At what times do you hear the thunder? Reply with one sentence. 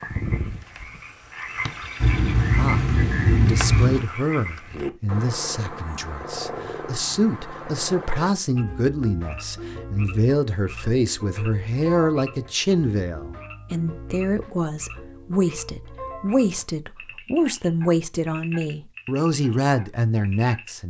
You can hear the thunder from 2.0 to 4.0 s.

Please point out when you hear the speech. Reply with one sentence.
The speech can be heard from 2.5 to 20.8 s.